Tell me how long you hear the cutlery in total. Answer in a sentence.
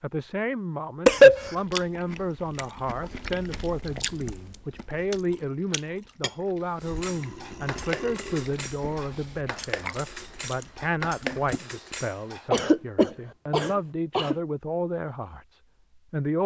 The cutlery can be heard for 6 seconds in total.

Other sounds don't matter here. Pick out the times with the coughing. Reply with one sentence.
The coughing can be heard from 1.1 to 1.5 s, from 8.7 to 9.2 s and from 12.5 to 14.3 s.